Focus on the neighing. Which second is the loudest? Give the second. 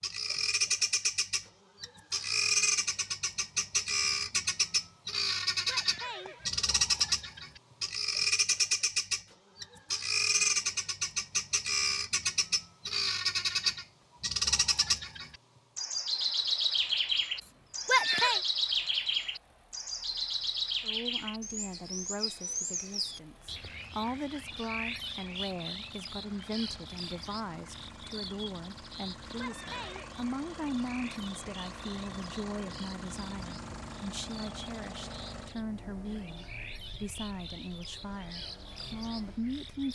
18 s.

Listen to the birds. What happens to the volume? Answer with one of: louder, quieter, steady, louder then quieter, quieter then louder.
quieter.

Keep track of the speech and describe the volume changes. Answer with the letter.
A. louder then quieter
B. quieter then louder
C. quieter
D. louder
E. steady
E.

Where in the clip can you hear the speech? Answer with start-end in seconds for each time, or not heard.
20.8-39.9.